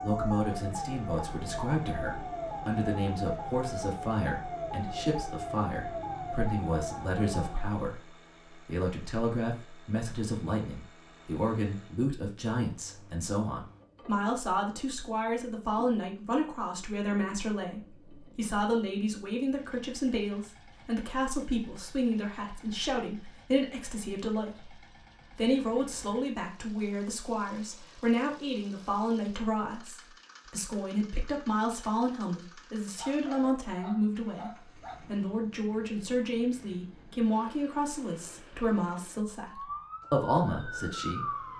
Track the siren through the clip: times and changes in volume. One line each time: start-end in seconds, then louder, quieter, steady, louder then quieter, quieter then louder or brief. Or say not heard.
0.0-7.8 steady
39.5-41.5 brief.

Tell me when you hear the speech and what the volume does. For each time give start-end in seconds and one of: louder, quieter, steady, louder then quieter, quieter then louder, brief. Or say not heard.
0.0-41.2 steady.